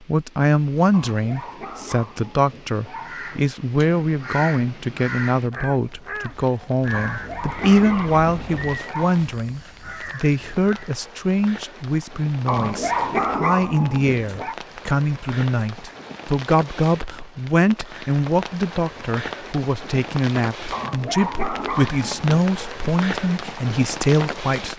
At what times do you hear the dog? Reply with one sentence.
You can hear the dog from 0.9 to 3.2 s, from 6.9 to 9.2 s, from 12.4 to 14.6 s and from 20.7 to 22.4 s.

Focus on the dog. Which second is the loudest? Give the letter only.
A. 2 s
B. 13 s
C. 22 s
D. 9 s
B.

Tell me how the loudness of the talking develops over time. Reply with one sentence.
The volume of the talking stays about the same.